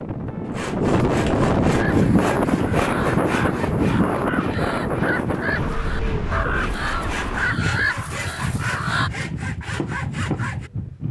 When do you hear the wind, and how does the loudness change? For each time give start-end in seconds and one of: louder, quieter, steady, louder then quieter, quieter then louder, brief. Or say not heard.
0.0-11.0 quieter.